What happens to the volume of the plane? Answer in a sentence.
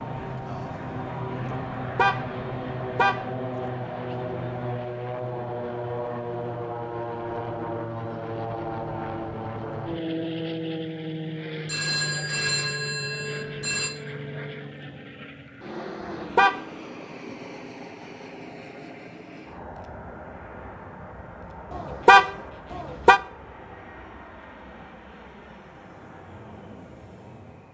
The loudness of the plane goes down.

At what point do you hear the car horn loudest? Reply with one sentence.
The volume of the car horn peaks at 22 seconds.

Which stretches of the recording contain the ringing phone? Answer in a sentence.
You can hear the ringing phone from 11.7 to 13.9 s.